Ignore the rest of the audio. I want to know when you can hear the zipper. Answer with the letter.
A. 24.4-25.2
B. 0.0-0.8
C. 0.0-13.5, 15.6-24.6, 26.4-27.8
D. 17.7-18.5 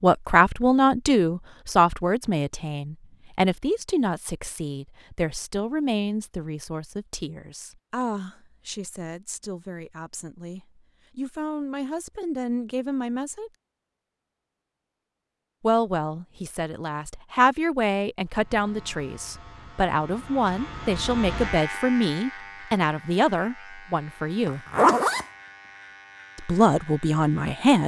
A.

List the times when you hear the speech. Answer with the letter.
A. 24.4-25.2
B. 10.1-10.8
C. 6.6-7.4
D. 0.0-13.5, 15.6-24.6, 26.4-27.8
D.